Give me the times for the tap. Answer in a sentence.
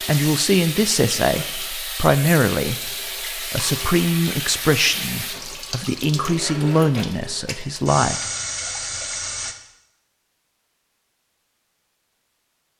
You can hear the tap from 0.0 to 9.6 s.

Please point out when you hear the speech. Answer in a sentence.
The speech can be heard from 0.0 to 8.2 s.